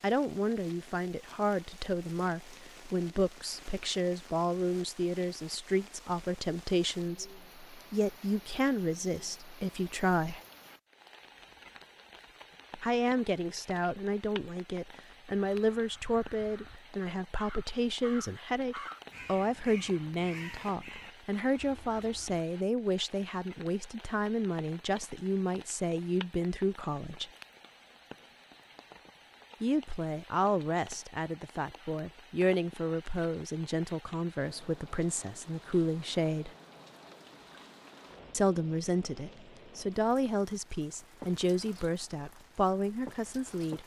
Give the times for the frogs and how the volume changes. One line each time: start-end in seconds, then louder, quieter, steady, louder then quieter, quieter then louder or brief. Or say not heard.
not heard.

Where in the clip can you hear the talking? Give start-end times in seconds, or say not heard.
0.0-10.4, 12.8-27.3, 29.6-36.5, 38.3-43.8.